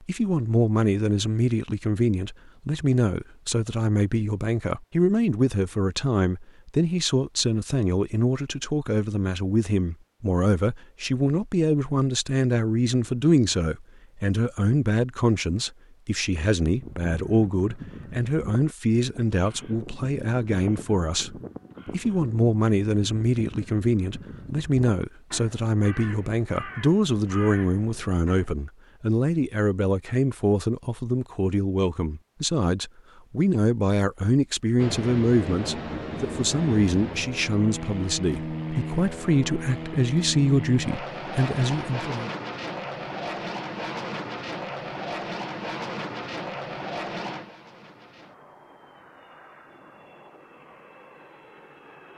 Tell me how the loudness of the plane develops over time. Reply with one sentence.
The loudness of the plane goes down.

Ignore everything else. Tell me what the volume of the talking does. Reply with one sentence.
The volume of the talking stays about the same.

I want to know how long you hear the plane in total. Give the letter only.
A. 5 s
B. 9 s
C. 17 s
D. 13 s
C.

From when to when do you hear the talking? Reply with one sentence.
You can hear the talking from 0.0 to 42.3 s.